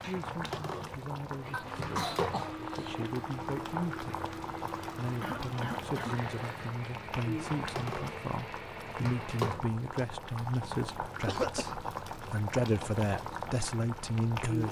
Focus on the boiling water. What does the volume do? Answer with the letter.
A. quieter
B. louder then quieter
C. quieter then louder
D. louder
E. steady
E.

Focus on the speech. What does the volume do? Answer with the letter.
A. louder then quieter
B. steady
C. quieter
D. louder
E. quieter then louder
D.